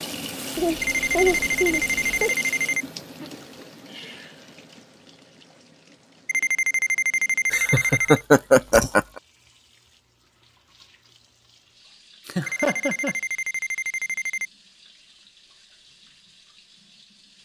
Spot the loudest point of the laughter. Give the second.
8 s.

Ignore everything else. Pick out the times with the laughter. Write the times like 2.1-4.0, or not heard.
0.6-2.4, 7.5-9.0, 12.2-13.2.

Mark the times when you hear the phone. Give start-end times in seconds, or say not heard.
0.8-2.9, 6.2-8.2, 12.4-14.5.